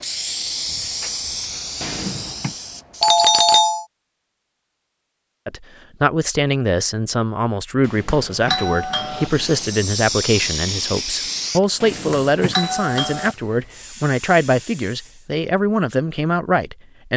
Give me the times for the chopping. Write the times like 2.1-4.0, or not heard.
not heard.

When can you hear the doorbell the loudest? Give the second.
3 s.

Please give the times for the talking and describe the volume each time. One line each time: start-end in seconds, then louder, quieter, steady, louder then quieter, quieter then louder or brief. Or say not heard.
5.5-17.1 steady.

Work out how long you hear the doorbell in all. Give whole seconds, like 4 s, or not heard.
3 s.